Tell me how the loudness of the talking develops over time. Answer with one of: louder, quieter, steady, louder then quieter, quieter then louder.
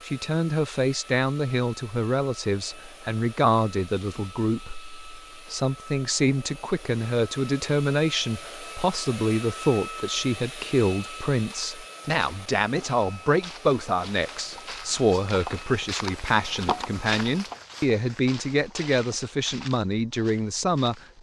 steady.